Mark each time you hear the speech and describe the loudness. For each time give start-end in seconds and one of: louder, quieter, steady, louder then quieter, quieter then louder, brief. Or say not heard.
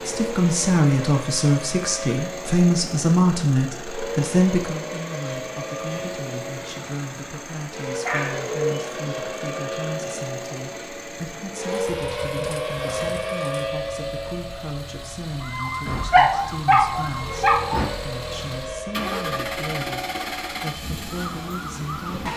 0.0-22.3 quieter.